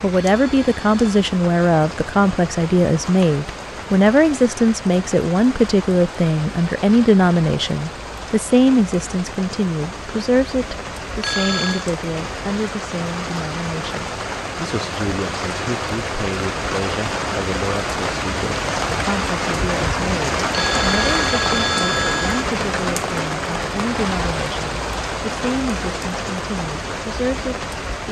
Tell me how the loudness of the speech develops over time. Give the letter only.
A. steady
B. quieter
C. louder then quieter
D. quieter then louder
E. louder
B.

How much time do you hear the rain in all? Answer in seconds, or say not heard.
28 s.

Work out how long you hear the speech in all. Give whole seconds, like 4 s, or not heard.
28 s.